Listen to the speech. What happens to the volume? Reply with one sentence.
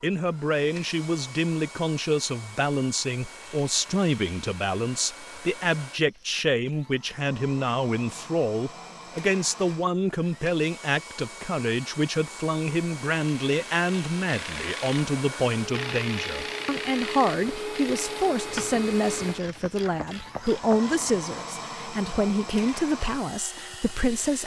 The loudness of the speech stays about the same.